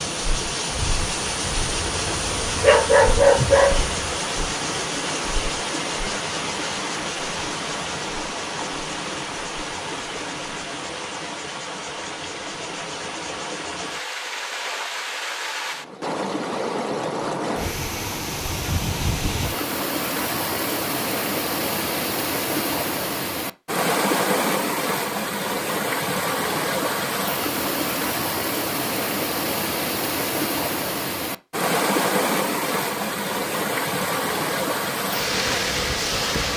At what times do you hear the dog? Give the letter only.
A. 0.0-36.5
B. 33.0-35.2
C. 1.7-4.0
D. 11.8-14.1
C.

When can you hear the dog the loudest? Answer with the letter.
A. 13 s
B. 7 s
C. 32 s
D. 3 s
D.